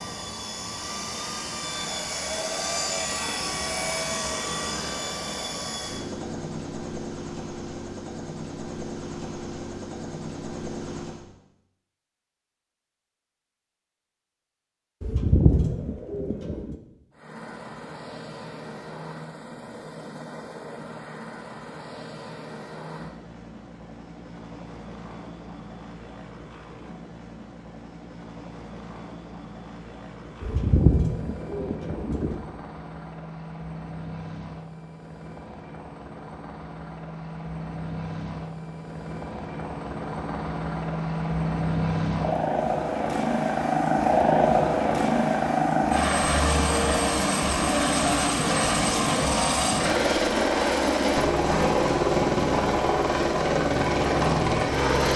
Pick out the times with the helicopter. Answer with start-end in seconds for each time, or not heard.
0.0-11.2, 17.1-55.1.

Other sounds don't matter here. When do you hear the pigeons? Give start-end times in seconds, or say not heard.
15.0-16.8, 30.4-32.4.